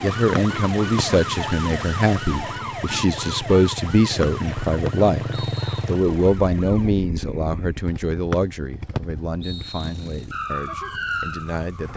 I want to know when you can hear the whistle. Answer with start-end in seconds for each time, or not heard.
0.3-1.1, 4.2-5.8, 8.3-10.2.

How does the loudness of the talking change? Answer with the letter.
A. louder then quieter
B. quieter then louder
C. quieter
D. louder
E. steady
C.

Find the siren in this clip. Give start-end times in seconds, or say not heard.
0.0-7.0, 10.3-11.9.